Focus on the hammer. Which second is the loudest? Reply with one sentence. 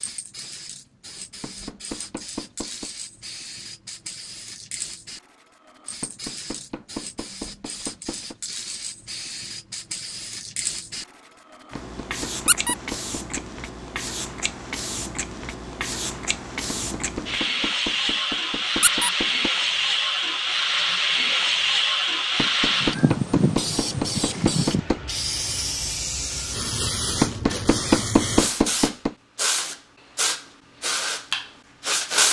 The volume of the hammer peaks at 28 seconds.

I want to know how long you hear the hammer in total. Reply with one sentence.
You can hear the hammer for 13 seconds altogether.